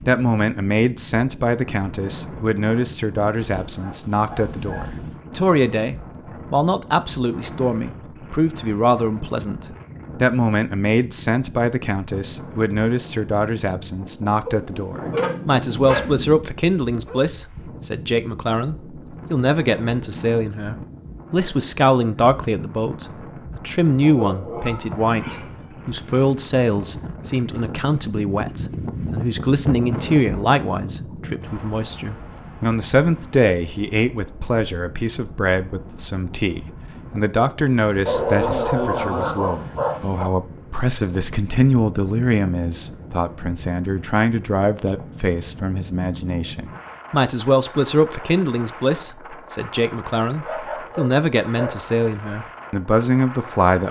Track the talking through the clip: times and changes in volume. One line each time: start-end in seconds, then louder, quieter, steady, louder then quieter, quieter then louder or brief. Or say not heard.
0.1-53.8 steady.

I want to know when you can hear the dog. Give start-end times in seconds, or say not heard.
3.4-5.2, 14.4-17.2, 24.0-25.7, 38.0-40.3, 50.5-51.8.